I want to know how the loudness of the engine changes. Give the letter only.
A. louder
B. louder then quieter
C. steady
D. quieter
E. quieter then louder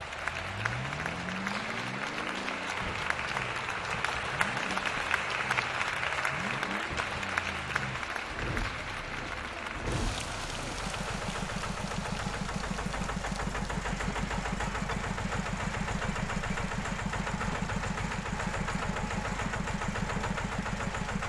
A.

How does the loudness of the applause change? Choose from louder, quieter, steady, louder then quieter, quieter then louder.
quieter.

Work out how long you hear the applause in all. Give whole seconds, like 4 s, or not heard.
21 s.